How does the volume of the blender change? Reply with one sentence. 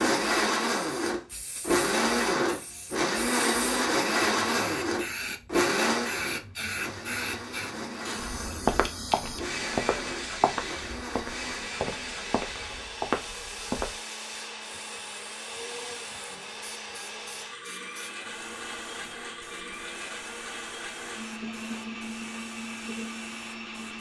The volume of the blender goes down.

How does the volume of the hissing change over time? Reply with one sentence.
The loudness of the hissing goes down.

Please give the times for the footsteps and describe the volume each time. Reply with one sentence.
You can hear the footsteps from 8.4 to 14.0 s, getting quieter then louder.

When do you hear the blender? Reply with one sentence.
You can hear the blender from 0.0 to 23.9 s.